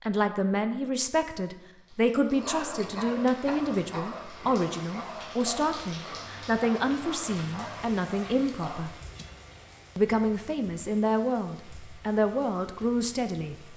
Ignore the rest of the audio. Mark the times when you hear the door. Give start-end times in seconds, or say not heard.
not heard.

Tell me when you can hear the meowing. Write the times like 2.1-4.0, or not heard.
9.1-9.9.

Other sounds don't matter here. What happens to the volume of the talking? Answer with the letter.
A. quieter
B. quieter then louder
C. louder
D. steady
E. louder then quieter
D.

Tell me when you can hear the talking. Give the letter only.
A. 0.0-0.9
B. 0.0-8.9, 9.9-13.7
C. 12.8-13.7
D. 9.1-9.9
B.